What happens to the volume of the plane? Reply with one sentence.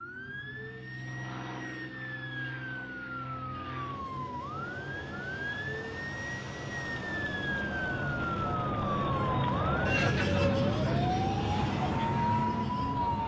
The volume of the plane goes up.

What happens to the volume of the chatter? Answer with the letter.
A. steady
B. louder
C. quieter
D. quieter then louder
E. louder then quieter
E.